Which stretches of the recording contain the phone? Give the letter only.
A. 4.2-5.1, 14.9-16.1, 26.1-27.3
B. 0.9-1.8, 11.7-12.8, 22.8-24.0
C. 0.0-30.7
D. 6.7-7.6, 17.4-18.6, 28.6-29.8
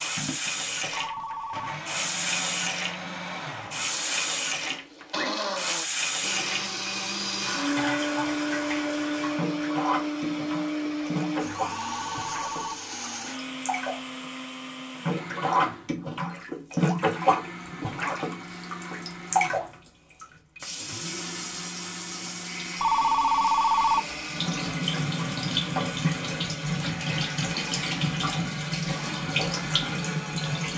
B.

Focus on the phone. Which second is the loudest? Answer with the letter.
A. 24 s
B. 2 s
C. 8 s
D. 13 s
A.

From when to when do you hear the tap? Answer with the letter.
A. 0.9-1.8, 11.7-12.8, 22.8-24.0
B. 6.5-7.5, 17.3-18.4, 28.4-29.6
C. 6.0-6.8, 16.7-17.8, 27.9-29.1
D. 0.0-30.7
D.